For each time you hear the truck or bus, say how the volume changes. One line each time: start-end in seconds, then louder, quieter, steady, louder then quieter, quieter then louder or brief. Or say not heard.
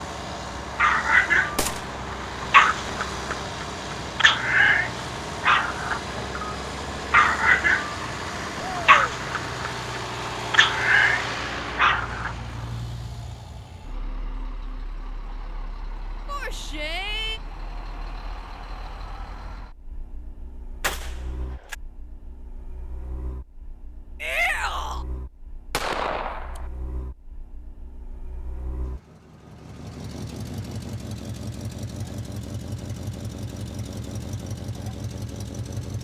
0.0-35.9 quieter then louder.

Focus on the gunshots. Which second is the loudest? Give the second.
26 s.